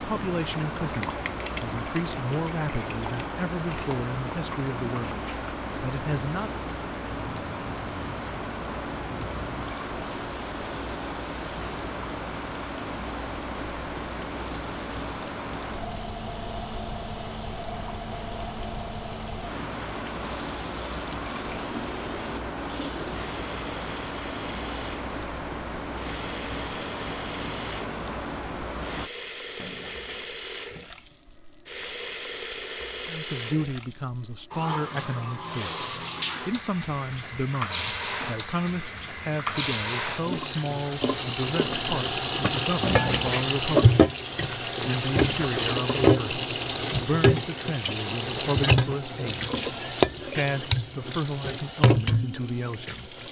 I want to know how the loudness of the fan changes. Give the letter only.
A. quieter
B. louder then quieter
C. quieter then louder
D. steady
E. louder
D.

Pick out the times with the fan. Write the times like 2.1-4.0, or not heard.
0.0-29.1.